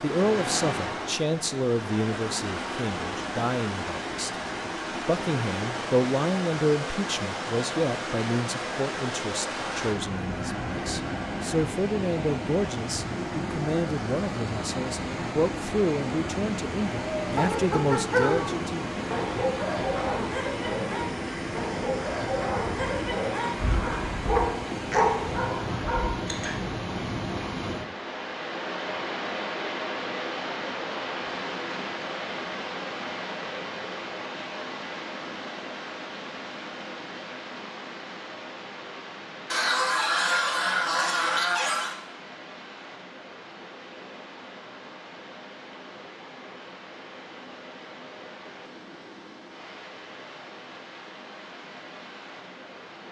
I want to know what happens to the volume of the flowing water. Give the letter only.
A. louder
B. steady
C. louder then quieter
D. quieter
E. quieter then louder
D.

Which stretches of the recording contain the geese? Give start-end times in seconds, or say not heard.
9.6-11.7, 39.5-42.0.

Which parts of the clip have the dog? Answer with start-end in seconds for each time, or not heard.
17.2-26.6.